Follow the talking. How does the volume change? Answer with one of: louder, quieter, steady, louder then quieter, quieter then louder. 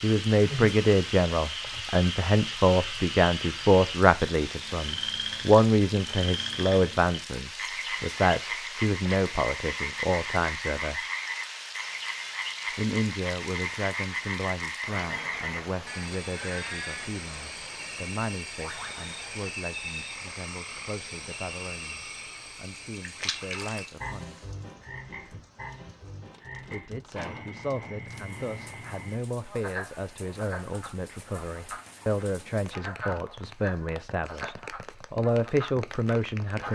quieter then louder.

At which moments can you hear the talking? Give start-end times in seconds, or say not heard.
0.0-11.0, 12.8-24.4, 26.6-36.6.